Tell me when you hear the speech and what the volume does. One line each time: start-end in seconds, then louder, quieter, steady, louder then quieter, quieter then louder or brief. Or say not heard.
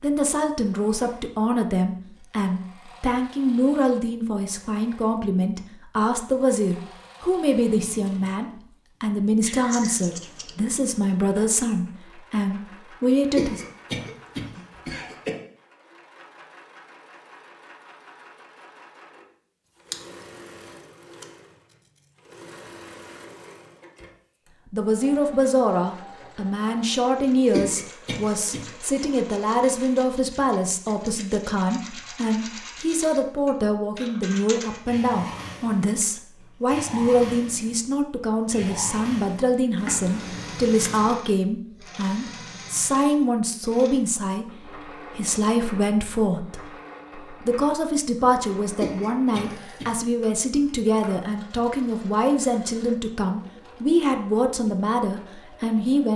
0.0-13.6 steady
24.7-56.1 steady.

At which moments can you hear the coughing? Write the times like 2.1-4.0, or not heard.
13.3-15.3, 27.5-28.6, 48.8-49.9.